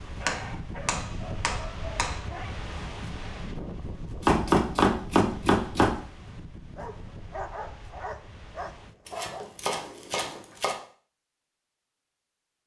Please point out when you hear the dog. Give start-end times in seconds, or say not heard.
0.1-2.5, 6.8-9.4.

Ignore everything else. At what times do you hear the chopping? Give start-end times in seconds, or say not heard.
0.2-2.1, 4.2-6.0, 9.1-10.8.